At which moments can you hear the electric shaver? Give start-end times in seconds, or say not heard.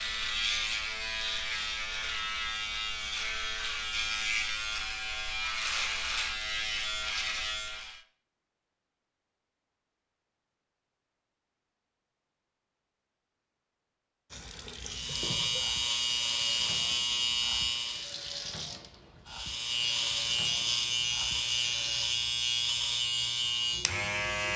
0.0-8.0, 14.8-18.1, 19.2-24.5.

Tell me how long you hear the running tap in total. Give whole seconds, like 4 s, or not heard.
8 s.